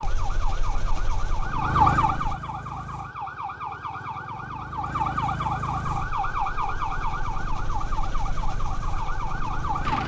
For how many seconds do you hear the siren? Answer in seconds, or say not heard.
10 s.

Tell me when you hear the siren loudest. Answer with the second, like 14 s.
2 s.